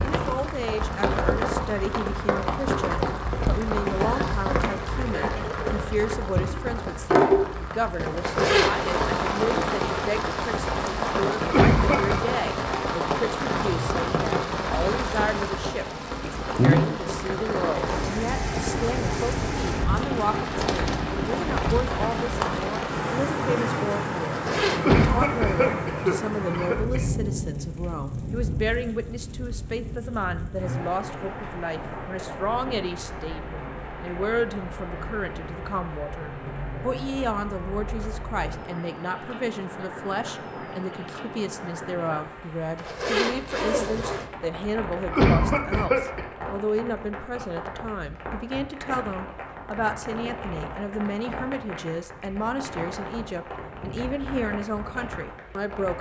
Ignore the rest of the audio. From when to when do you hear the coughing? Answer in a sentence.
You can hear the coughing from 11.4 to 12.3 s, from 24.8 to 27.1 s and from 45.1 to 46.2 s.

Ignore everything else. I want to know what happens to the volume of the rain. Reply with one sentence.
The loudness of the rain goes down.